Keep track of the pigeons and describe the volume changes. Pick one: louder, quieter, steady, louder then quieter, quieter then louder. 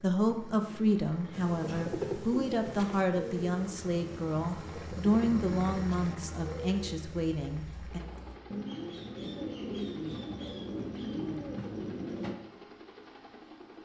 quieter then louder.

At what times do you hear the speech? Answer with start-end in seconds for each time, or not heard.
0.0-8.0.